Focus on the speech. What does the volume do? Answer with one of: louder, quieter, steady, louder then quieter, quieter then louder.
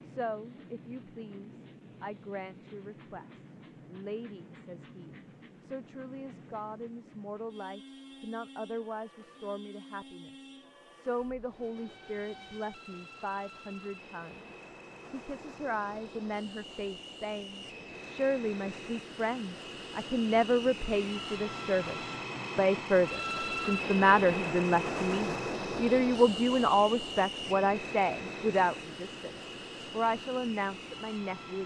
louder.